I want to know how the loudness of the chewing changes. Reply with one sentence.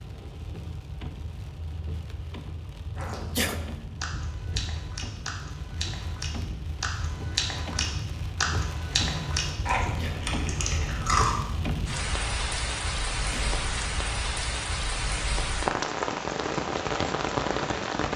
The loudness of the chewing goes up.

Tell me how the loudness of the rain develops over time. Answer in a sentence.
The loudness of the rain goes up.